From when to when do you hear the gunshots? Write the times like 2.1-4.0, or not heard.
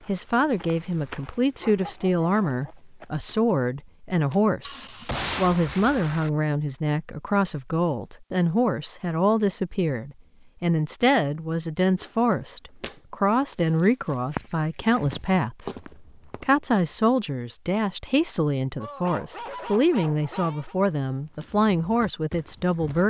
4.6-6.3.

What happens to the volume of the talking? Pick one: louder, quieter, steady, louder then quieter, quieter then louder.
steady.